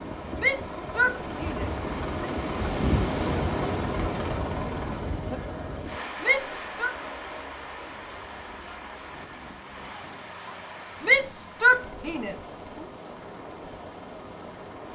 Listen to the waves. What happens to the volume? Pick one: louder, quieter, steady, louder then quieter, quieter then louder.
quieter.